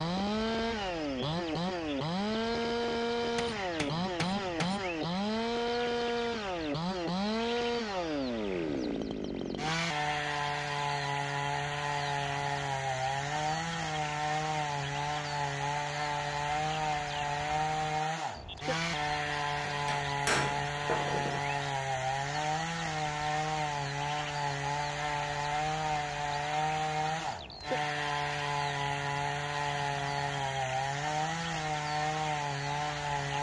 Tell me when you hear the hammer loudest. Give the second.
20 s.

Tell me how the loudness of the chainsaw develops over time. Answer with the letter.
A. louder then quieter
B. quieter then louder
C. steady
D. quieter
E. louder
C.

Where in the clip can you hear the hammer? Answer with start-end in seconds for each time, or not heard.
3.4-4.8, 19.6-21.4.